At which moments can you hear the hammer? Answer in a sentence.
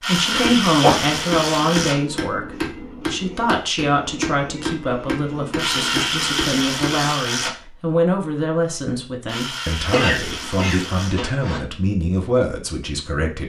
The hammer can be heard from 0.2 to 7.2 s.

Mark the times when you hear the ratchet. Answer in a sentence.
The ratchet can be heard from 0.0 to 1.9 s, from 5.5 to 7.5 s and from 9.2 to 11.2 s.